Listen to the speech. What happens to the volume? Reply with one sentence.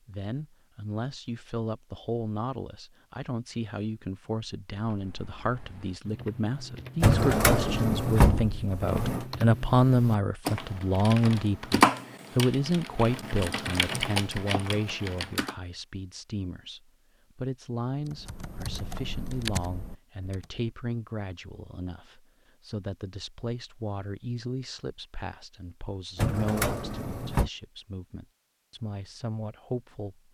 The volume of the speech goes up, then down.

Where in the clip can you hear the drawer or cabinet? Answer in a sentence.
You can hear the drawer or cabinet from 7.0 to 9.2 s and from 26.1 to 27.5 s.